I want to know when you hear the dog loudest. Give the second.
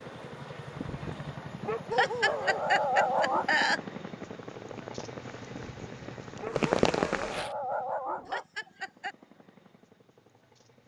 3 s.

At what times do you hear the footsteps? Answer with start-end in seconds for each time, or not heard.
not heard.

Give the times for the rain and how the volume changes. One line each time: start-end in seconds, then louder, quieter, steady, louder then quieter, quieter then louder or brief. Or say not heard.
0.0-7.5 louder.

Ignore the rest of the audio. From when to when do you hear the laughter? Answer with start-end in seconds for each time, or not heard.
1.9-3.8, 8.2-9.2.